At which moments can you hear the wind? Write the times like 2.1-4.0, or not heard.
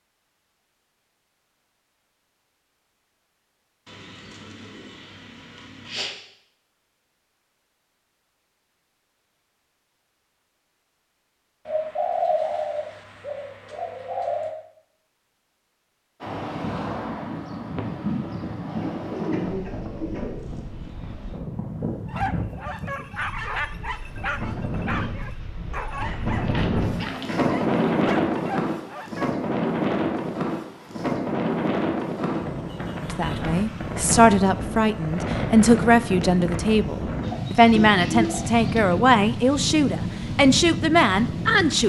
16.2-41.8.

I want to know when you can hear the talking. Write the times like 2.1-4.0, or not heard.
33.0-41.8.